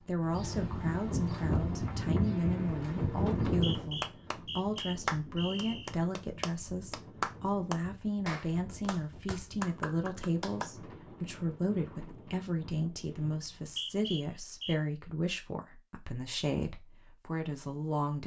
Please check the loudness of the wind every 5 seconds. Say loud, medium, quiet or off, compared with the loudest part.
loud, quiet, quiet, off.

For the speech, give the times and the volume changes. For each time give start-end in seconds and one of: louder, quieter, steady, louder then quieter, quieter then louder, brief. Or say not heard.
0.0-18.2 steady.